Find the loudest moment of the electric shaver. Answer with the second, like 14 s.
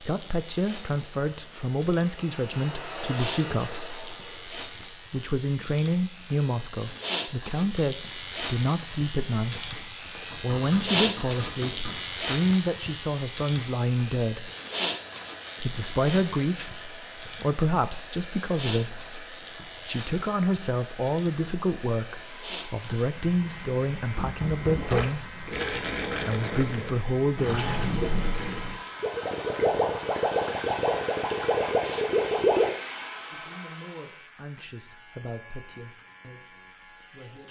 11 s.